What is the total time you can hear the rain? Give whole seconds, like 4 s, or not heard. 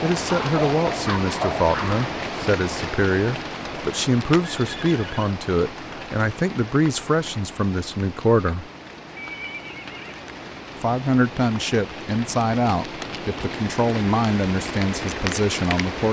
16 s.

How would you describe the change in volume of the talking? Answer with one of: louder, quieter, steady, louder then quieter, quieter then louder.
steady.